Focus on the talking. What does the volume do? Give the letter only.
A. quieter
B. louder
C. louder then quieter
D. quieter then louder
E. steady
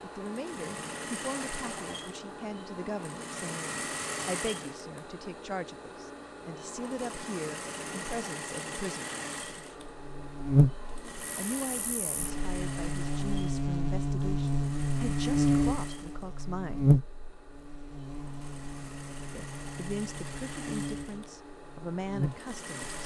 E.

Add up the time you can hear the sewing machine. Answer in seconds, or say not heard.
23 s.